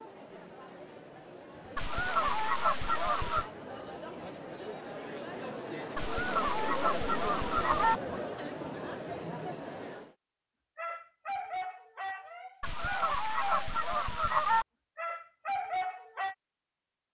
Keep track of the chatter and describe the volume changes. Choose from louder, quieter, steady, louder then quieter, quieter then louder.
louder.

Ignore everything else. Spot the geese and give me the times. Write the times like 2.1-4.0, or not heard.
1.8-3.5, 6.0-8.0, 12.6-14.7.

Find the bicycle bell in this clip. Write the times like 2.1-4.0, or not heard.
not heard.